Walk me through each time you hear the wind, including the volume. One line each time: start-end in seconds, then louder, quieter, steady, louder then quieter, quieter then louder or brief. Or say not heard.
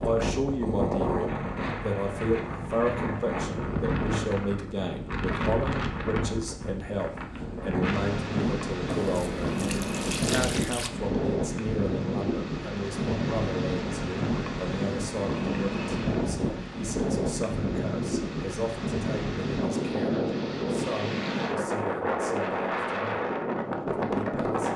0.0-24.7 steady.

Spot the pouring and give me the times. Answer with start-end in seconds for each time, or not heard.
8.8-10.9.